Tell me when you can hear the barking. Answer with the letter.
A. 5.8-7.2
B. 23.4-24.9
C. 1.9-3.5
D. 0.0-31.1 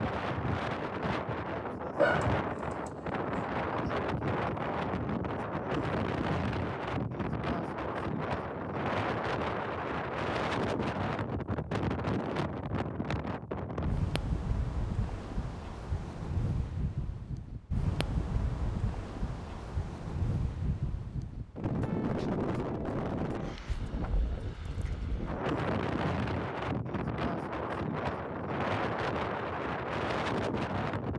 C.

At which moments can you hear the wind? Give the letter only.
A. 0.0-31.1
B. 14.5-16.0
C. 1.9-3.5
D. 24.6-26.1
A.